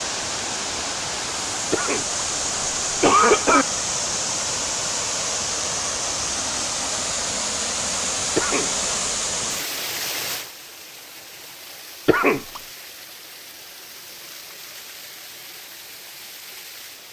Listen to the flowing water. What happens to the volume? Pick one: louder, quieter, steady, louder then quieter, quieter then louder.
quieter.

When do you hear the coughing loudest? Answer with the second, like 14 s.
3 s.